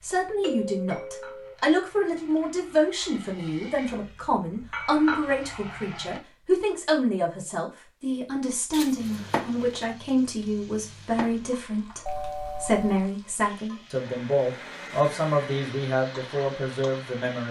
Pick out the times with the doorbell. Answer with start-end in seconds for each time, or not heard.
0.4-1.6, 8.7-9.8, 12.1-12.9.